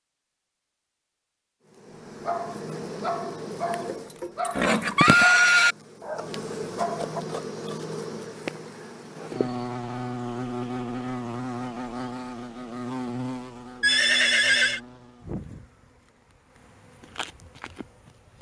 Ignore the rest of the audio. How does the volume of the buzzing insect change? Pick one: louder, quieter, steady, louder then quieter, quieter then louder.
quieter.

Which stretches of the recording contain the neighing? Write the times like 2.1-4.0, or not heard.
3.7-5.8, 13.8-14.8.